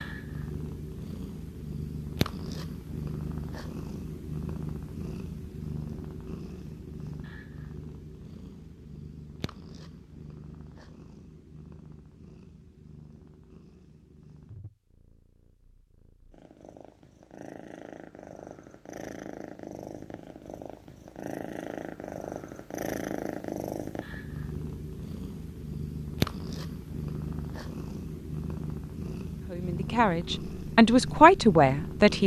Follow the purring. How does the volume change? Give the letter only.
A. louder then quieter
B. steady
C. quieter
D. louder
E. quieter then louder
E.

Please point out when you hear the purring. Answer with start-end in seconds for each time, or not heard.
0.0-32.2.